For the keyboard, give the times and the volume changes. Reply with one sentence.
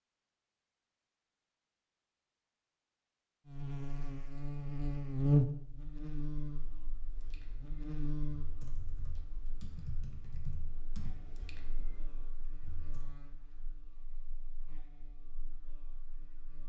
The keyboard can be heard from 6.9 to 13.2 s, getting louder then quieter.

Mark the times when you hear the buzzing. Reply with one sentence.
The buzzing can be heard from 3.5 to 16.6 s.